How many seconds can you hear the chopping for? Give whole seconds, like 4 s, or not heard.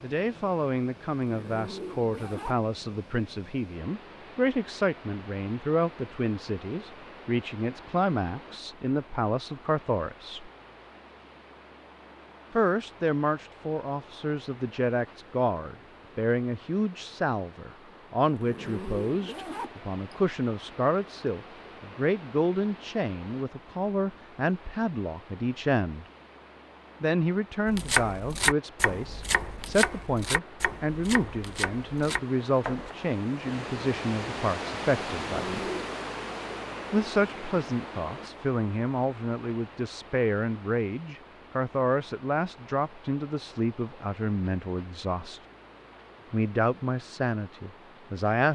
5 s.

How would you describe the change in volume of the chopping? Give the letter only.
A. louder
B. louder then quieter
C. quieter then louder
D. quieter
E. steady
D.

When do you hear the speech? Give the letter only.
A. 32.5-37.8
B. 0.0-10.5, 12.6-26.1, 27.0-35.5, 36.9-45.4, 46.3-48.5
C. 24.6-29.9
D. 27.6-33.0
B.